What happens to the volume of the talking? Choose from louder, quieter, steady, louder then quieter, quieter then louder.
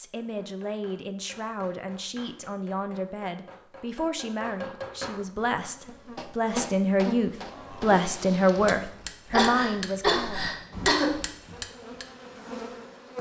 louder.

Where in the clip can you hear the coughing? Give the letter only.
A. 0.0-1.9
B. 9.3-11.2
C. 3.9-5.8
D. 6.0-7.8
B.